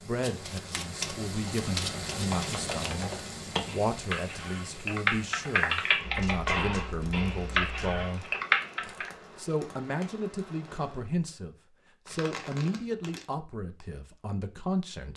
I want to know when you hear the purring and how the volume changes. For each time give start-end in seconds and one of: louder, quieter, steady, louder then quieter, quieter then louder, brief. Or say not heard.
not heard.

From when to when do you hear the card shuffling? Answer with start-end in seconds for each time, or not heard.
0.2-2.9, 6.0-8.0, 12.1-13.2.